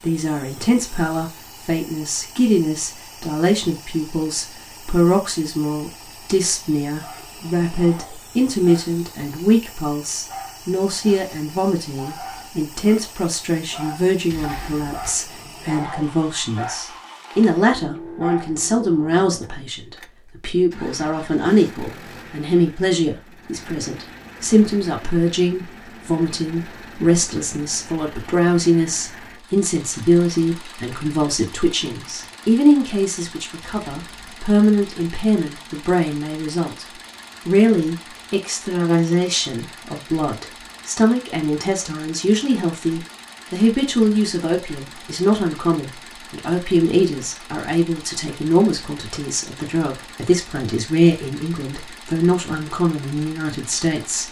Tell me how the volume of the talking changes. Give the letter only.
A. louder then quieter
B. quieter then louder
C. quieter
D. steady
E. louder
D.